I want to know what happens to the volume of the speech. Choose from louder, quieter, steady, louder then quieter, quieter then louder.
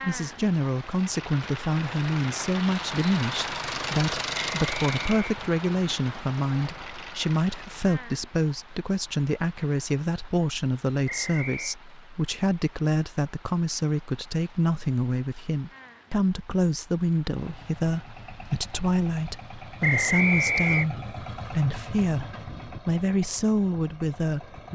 steady.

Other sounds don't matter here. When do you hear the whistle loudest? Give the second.
20 s.